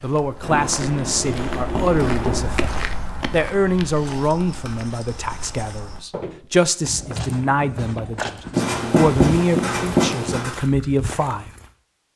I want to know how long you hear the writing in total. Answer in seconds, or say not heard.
6 s.